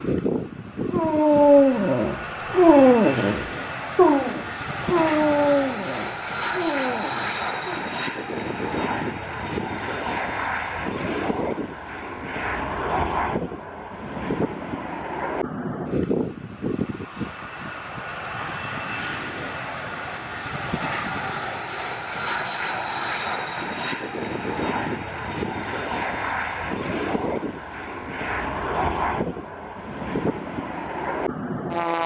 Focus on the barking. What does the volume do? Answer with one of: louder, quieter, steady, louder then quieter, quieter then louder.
quieter.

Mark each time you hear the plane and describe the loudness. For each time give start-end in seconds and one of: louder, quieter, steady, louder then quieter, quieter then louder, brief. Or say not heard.
0.0-32.0 steady.